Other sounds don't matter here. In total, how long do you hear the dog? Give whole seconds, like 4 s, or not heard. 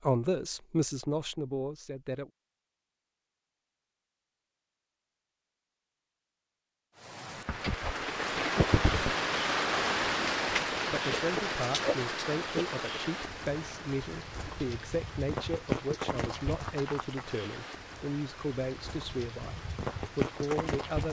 not heard.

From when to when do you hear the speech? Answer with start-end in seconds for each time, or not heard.
0.0-2.3, 10.7-21.0.